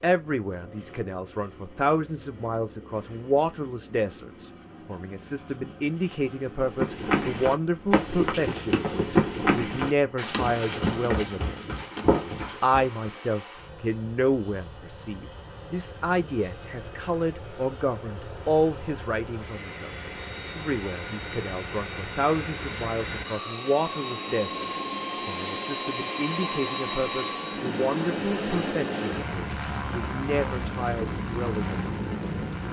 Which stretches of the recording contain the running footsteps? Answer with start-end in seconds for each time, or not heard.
6.6-13.1.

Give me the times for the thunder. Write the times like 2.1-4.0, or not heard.
not heard.